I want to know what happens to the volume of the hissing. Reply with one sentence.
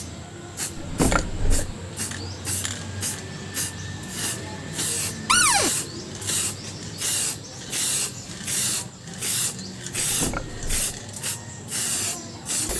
The volume of the hissing stays about the same.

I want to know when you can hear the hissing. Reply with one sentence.
The hissing can be heard from 0.0 to 12.7 s.